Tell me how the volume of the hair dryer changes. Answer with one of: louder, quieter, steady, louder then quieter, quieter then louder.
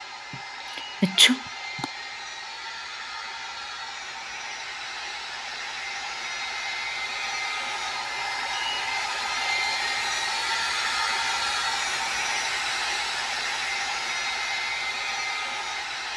louder.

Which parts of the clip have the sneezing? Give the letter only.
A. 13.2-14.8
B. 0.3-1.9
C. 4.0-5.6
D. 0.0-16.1
B.